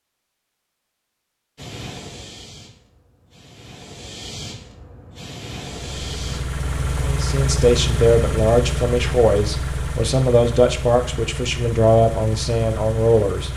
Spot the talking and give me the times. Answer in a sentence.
You can hear the talking from 7.0 to 13.5 s.